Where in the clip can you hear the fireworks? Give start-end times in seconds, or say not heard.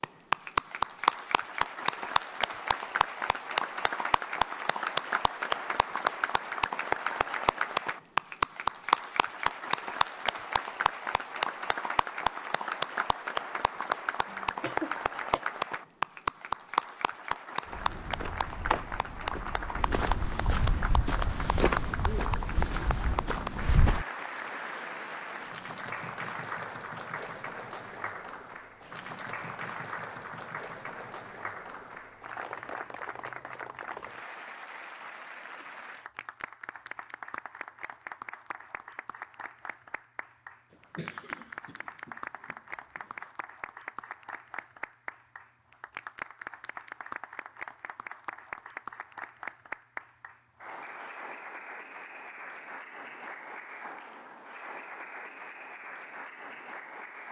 not heard.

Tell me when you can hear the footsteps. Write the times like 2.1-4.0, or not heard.
17.6-24.1.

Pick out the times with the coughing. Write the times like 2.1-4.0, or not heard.
14.2-15.4, 40.7-43.1.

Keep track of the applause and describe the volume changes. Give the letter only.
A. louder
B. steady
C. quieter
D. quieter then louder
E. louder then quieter
C.